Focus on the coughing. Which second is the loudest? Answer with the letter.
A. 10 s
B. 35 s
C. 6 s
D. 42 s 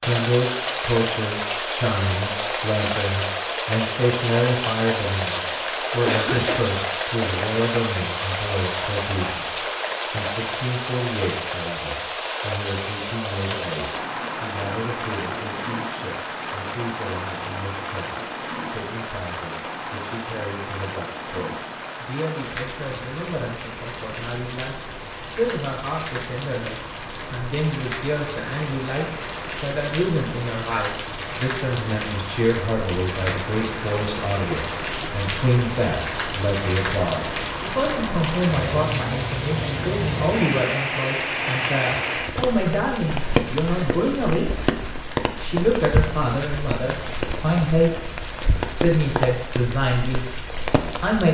C.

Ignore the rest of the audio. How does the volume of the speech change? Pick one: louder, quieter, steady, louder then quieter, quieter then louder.
quieter then louder.